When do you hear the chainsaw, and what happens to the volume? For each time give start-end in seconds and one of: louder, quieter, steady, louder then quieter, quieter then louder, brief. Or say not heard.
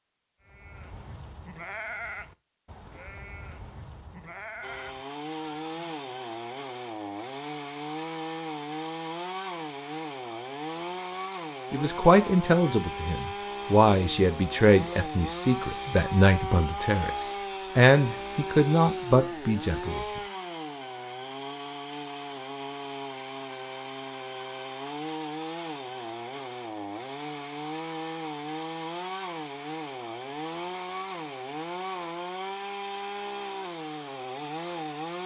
4.6-35.2 steady.